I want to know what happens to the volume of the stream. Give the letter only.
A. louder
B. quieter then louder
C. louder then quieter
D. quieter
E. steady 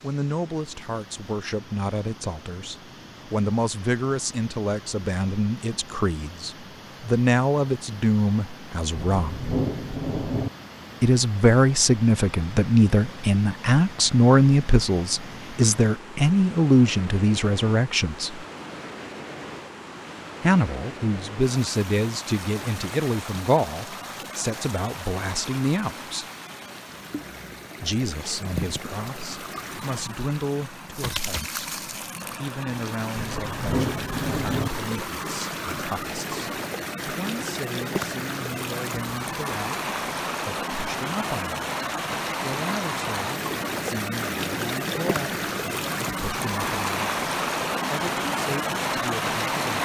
A.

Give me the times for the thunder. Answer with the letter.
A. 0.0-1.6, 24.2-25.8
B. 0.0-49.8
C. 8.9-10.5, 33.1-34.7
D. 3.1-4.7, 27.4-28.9
C.